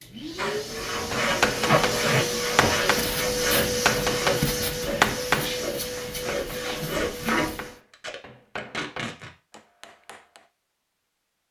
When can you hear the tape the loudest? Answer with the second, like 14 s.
2 s.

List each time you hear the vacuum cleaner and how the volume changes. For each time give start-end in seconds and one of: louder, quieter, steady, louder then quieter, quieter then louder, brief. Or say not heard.
0.0-7.8 louder then quieter.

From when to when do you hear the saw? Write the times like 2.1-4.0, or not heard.
0.3-7.6.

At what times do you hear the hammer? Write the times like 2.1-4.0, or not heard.
1.1-10.4.